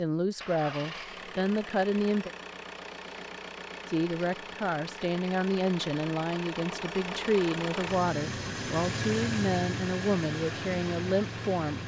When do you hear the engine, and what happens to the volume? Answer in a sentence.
You can hear the engine from 0.3 to 11.8 s, getting louder.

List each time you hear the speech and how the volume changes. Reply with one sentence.
You can hear the speech briefly from 0.0 to 2.3 s; and from 3.9 to 11.8 s, at a steady volume.